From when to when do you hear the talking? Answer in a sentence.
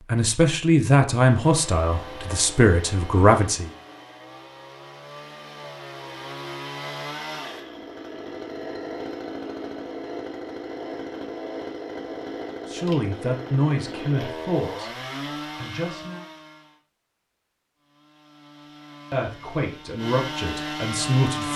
The talking can be heard from 0.1 to 3.7 s, from 12.7 to 14.9 s, from 15.6 to 16.2 s and from 19.1 to 21.5 s.